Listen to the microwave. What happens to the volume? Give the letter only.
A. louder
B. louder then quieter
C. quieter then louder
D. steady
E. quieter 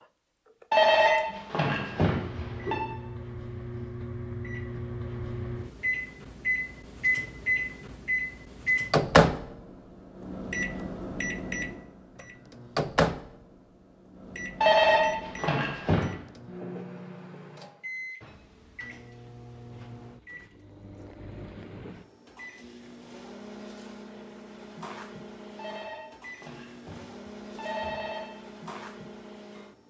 B.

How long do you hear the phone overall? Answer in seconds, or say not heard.
6 s.